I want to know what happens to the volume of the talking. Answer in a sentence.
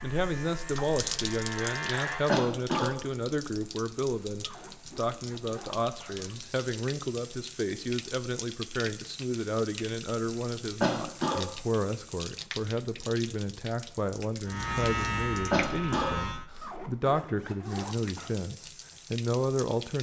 The volume of the talking stays about the same.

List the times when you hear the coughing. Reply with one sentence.
You can hear the coughing from 2.2 to 2.9 s, from 10.8 to 11.4 s and from 15.5 to 16.1 s.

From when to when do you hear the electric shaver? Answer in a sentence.
You can hear the electric shaver from 0.0 to 2.4 s and from 14.4 to 16.4 s.